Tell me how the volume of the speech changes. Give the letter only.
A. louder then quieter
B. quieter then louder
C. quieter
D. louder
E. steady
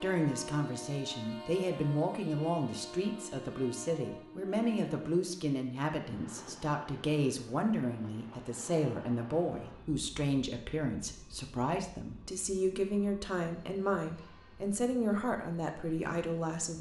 E.